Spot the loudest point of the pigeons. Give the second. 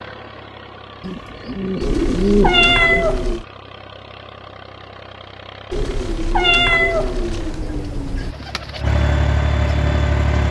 2 s.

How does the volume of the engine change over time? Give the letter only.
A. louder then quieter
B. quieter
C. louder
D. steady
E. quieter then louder
C.